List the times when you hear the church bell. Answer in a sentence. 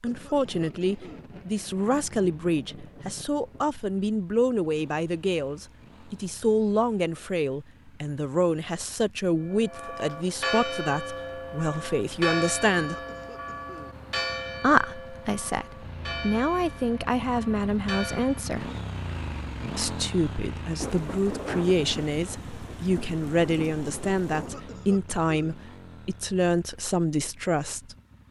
The church bell can be heard from 9.4 to 18.5 s.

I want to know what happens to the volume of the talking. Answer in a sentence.
The loudness of the talking stays about the same.